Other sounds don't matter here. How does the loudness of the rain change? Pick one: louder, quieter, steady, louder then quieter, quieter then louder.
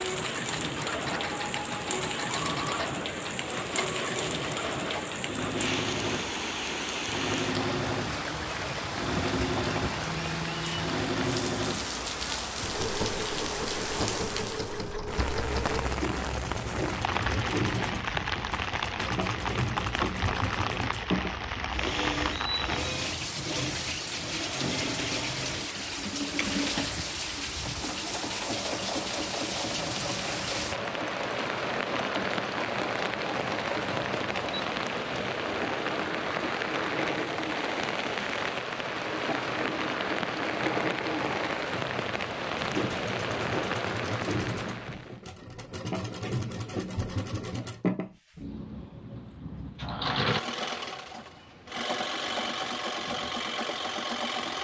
steady.